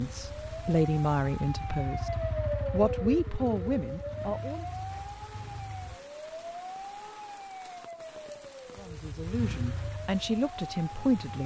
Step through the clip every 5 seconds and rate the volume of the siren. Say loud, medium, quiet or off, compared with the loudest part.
loud, medium, medium.